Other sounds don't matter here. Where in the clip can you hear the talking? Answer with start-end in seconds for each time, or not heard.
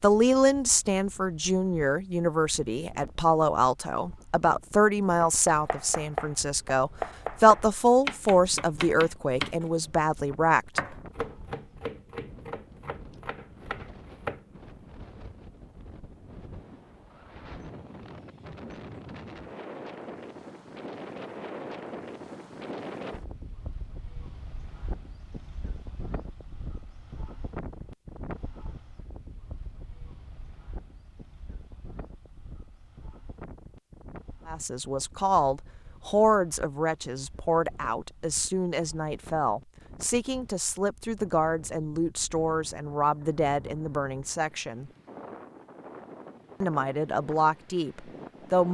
0.0-10.8, 34.5-44.9, 46.6-48.6.